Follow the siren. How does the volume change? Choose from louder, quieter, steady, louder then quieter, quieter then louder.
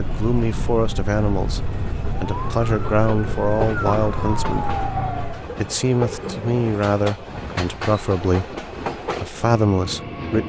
louder.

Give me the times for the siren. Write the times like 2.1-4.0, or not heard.
0.0-5.5.